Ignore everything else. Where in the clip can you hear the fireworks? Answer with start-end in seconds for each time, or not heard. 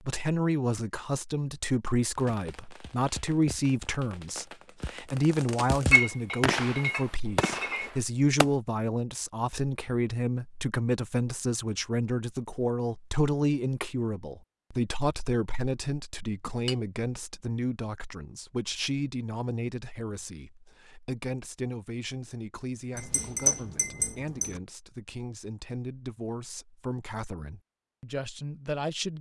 2.1-8.5.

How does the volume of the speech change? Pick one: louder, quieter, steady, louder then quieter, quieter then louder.
quieter.